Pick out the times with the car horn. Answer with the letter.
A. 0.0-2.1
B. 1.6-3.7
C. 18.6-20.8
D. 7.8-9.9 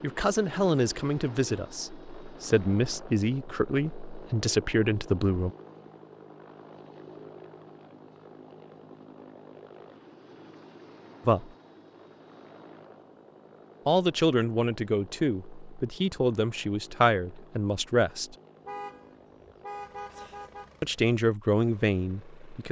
C.